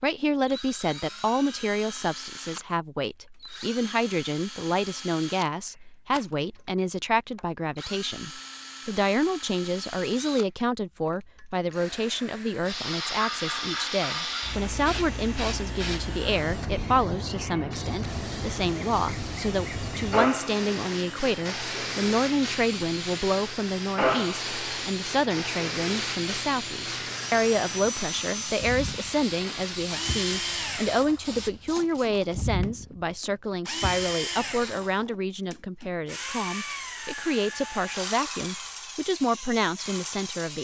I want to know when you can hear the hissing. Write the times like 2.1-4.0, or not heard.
12.7-32.0.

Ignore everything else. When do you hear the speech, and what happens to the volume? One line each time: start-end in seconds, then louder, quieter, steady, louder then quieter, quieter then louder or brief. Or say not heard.
0.0-40.5 steady.